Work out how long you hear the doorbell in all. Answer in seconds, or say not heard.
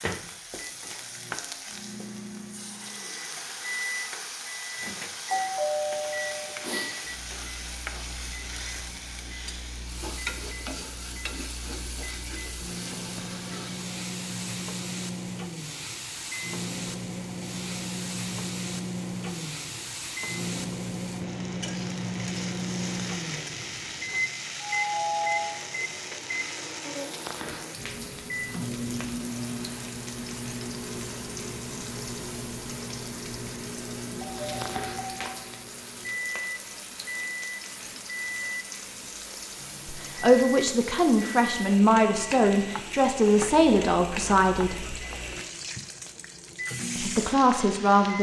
4 s.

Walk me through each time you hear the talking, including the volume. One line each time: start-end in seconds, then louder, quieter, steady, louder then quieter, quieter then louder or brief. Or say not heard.
39.9-45.0 steady
47.0-48.1 brief.